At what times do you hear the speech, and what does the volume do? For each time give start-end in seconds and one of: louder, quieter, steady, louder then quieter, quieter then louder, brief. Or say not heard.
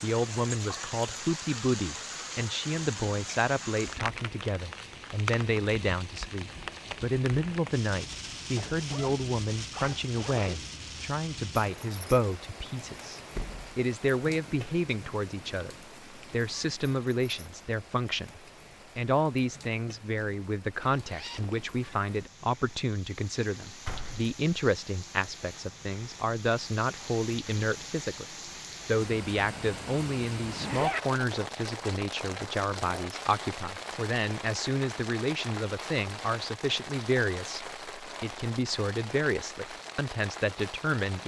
0.0-28.2 steady
28.9-41.2 steady.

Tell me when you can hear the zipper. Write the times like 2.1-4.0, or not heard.
8.6-10.6, 20.8-21.6, 30.6-31.1.